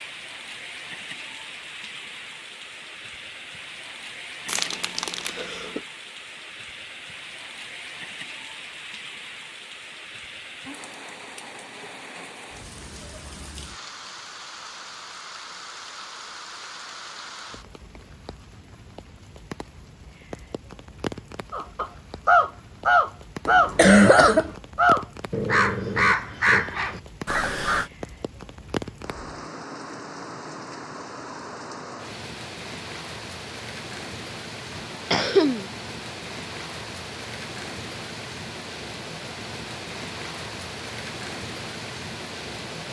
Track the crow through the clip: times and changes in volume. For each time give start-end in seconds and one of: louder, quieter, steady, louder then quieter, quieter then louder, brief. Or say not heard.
21.5-27.9 quieter.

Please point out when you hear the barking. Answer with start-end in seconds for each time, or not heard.
not heard.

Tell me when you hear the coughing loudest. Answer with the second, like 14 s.
24 s.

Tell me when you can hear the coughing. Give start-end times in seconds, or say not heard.
4.5-5.8, 23.4-24.5, 34.8-35.7.